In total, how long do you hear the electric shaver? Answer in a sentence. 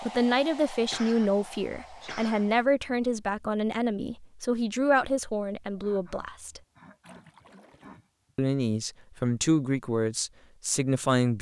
The electric shaver can't be heard in this clip.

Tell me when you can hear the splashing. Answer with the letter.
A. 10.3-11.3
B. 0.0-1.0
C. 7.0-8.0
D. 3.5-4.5
C.